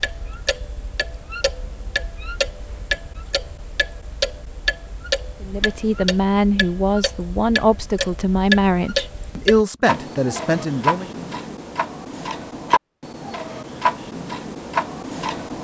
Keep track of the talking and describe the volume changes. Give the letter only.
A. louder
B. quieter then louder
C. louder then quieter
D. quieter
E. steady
E.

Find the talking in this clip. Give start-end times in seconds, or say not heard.
5.4-11.1.